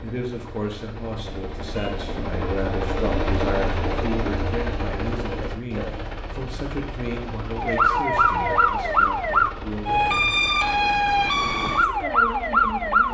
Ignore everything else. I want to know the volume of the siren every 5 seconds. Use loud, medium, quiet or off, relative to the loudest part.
off, loud, loud.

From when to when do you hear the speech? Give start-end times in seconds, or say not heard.
0.0-10.2, 11.8-13.0.